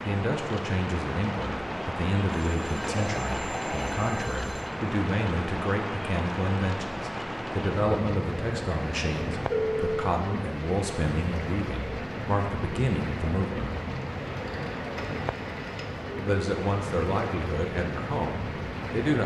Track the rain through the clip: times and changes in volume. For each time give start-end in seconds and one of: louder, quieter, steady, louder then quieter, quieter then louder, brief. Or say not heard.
0.0-19.2 steady.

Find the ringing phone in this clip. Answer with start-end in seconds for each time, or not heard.
2.3-4.7, 9.5-9.9, 14.0-16.1.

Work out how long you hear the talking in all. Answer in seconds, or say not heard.
17 s.